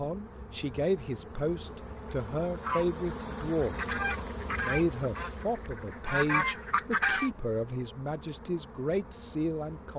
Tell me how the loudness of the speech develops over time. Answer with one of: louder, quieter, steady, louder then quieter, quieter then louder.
steady.